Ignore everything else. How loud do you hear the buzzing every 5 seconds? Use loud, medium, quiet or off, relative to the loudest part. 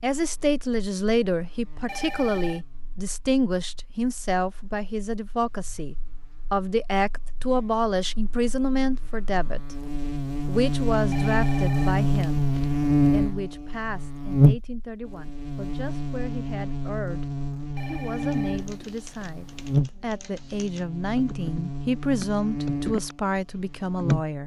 quiet, quiet, loud, medium, medium.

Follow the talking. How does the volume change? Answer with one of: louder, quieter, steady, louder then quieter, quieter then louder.
quieter then louder.